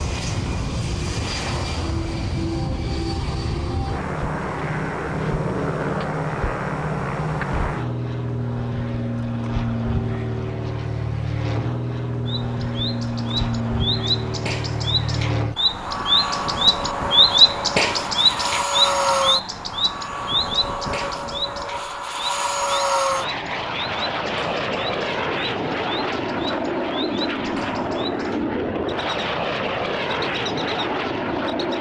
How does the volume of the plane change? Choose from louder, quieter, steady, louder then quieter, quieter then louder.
steady.